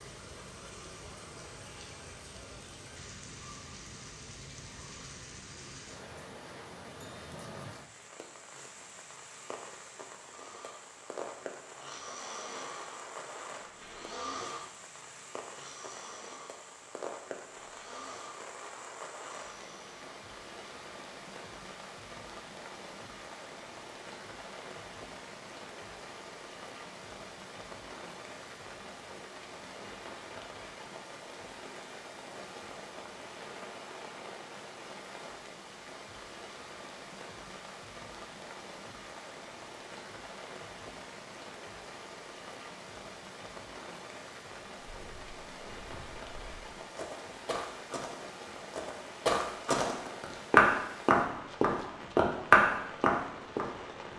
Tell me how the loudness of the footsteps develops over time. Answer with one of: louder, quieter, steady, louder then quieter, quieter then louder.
louder.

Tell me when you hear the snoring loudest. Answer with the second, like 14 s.
14 s.